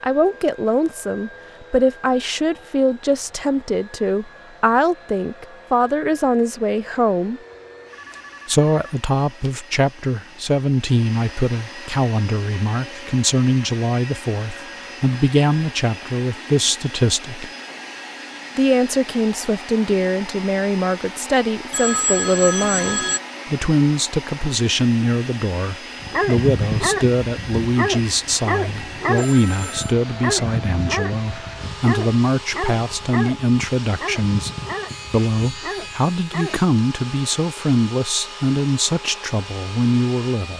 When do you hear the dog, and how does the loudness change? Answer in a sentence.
The dog can be heard from 26.0 to 36.6 s, getting quieter.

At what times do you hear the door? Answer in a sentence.
You can't hear the door here.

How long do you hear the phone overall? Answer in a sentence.
The phone can be heard for 4 seconds in total.